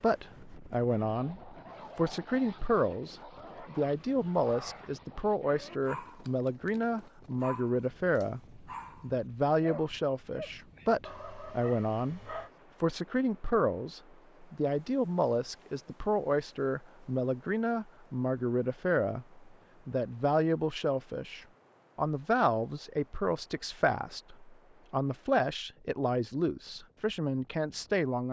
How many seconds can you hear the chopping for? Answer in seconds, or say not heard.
not heard.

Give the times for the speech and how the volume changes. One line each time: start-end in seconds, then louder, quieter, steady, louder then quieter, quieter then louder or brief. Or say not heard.
0.0-28.2 steady.